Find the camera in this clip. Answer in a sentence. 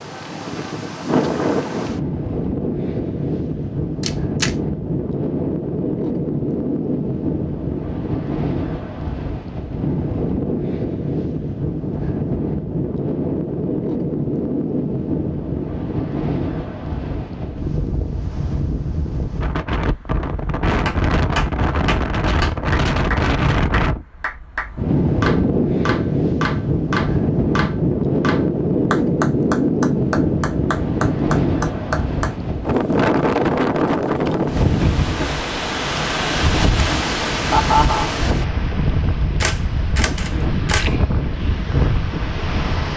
You can hear the camera from 4.0 to 4.5 s and from 39.4 to 41.0 s.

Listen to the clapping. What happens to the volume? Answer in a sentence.
The volume of the clapping stays about the same.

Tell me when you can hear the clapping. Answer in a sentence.
You can hear the clapping from 20.9 to 32.4 s.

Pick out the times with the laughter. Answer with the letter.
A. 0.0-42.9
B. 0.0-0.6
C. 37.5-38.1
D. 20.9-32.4
C.